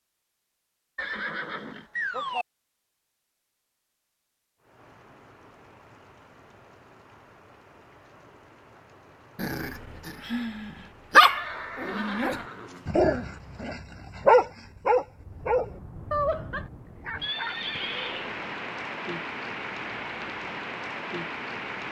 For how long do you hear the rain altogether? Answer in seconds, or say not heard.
17 s.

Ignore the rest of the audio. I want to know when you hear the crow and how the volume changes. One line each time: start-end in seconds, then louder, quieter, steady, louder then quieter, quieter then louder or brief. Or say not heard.
not heard.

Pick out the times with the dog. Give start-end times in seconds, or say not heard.
9.3-17.9.